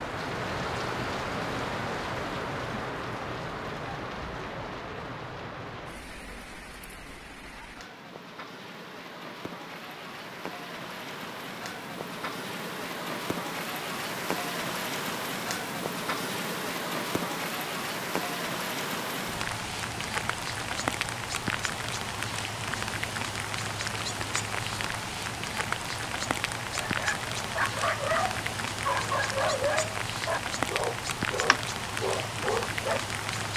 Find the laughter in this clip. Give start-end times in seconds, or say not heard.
not heard.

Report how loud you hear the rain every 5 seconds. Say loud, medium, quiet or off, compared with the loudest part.
loud, medium, loud, loud, loud, loud, loud.